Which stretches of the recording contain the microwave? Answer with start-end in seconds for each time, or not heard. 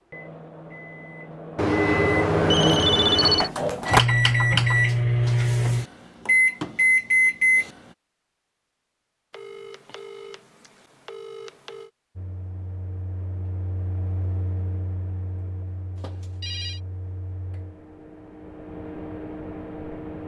0.0-7.7, 12.2-20.2.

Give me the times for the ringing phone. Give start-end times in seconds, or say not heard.
1.6-3.5, 9.3-11.9, 15.9-16.8.